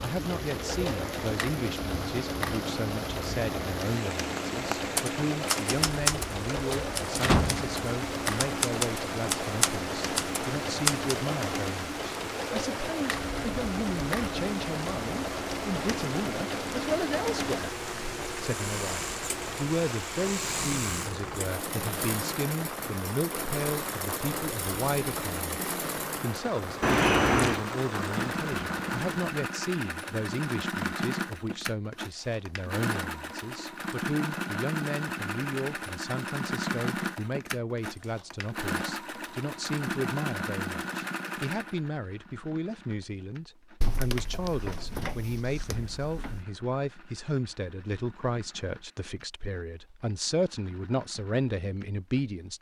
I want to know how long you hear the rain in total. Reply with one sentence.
The rain can be heard for 29 seconds in total.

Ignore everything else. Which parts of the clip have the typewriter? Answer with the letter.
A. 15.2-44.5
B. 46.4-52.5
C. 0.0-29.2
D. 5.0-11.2
D.